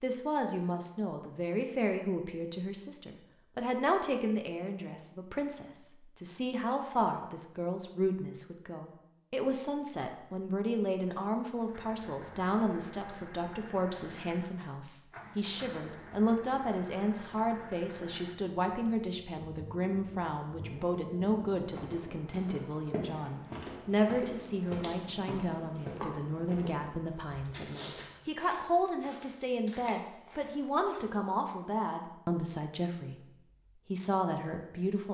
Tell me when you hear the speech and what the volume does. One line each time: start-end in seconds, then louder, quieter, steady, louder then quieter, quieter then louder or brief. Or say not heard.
0.0-33.3 steady
33.9-35.0 brief.